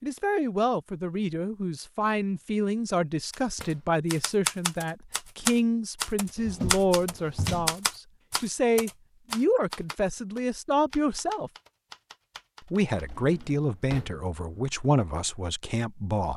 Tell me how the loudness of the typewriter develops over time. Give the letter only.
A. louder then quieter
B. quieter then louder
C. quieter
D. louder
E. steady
C.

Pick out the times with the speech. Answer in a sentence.
The speech can be heard from 0.0 to 11.5 s and from 12.7 to 16.3 s.